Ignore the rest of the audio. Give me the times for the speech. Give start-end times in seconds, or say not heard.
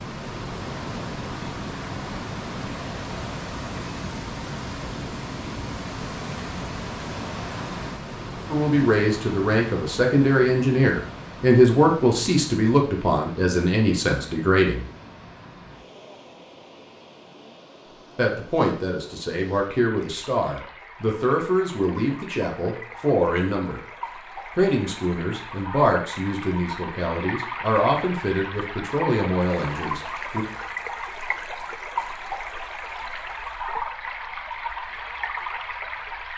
8.5-14.8, 18.1-23.8, 24.6-30.4.